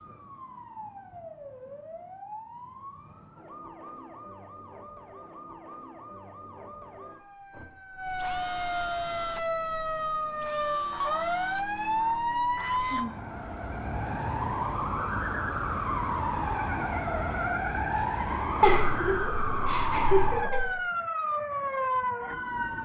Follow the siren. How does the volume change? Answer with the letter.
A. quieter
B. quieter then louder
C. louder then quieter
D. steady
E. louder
E.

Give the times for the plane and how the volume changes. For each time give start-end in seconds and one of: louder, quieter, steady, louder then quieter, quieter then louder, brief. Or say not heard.
not heard.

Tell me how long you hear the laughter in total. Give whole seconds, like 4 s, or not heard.
2 s.